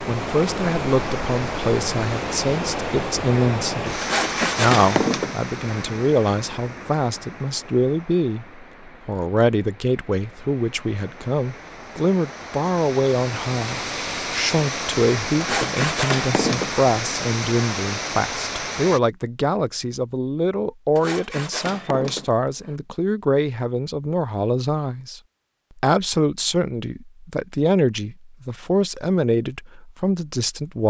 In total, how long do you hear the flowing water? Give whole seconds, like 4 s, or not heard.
19 s.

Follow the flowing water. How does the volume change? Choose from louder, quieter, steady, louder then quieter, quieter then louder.
quieter then louder.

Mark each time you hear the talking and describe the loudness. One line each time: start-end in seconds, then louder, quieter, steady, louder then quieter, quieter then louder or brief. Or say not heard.
0.1-30.8 steady.